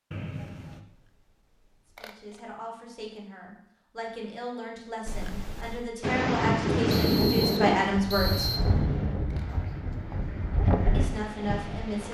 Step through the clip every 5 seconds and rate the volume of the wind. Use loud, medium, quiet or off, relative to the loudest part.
off, loud, medium.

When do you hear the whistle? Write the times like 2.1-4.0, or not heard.
0.1-0.8, 7.0-8.6.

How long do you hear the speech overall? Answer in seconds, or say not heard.
8 s.